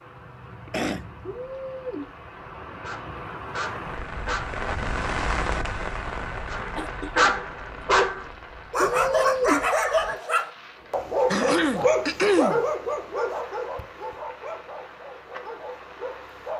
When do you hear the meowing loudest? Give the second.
9 s.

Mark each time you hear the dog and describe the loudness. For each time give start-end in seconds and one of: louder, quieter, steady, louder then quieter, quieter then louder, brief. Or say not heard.
2.8-4.5 brief
6.5-16.5 quieter.